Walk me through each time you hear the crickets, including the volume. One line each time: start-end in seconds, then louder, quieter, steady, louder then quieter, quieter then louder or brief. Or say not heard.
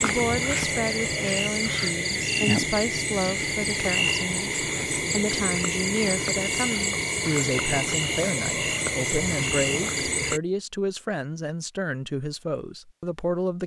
0.0-10.4 steady.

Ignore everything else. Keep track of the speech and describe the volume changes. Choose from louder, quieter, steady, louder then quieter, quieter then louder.
steady.